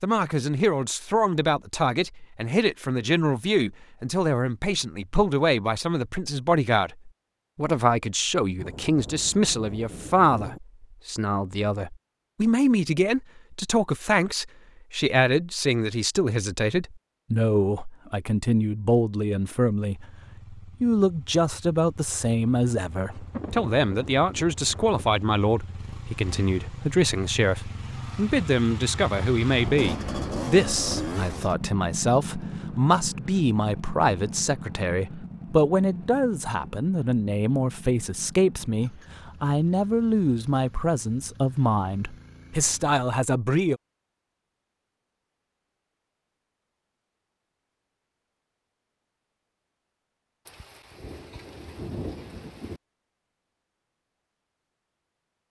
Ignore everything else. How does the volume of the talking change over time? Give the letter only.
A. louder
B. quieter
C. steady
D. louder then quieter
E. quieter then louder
C.